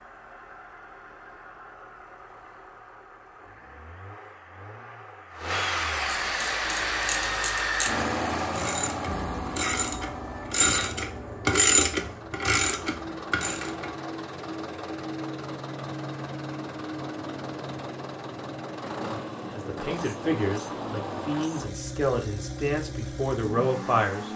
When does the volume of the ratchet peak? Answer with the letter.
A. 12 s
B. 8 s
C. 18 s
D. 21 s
A.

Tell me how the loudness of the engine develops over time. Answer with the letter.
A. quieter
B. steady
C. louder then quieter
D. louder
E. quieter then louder
C.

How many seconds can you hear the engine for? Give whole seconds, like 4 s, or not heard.
24 s.